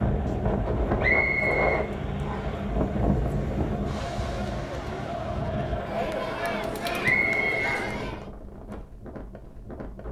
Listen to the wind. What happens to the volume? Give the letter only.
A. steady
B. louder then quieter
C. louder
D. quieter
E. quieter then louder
D.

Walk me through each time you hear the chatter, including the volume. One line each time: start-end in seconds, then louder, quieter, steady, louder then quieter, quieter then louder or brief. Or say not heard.
0.0-8.3 louder.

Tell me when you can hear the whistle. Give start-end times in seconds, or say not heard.
1.0-2.6, 7.0-7.6.